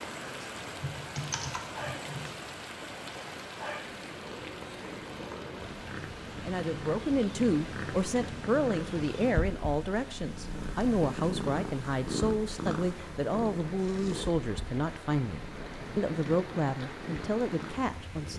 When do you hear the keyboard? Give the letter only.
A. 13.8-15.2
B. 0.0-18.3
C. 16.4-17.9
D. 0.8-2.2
D.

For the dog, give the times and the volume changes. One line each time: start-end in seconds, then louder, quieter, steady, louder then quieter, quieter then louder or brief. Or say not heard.
not heard.